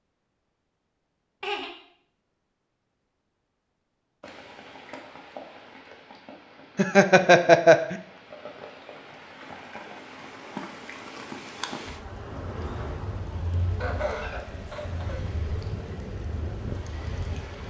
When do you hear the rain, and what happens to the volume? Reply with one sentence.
The rain can be heard from 4.2 to 17.6 s, getting louder.